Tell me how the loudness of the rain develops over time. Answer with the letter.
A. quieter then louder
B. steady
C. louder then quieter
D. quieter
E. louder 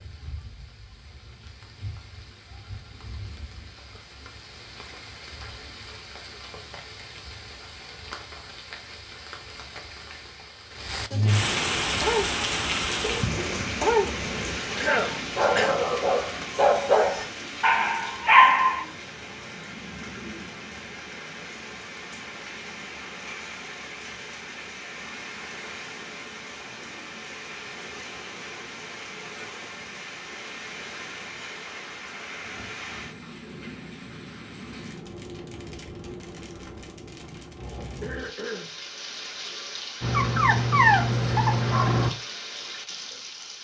C.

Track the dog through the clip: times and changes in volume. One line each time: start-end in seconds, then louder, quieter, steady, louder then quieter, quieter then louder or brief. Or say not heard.
11.8-18.9 louder
40.0-42.1 brief.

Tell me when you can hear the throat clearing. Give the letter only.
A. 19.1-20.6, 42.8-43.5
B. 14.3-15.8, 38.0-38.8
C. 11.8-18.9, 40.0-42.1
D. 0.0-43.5
B.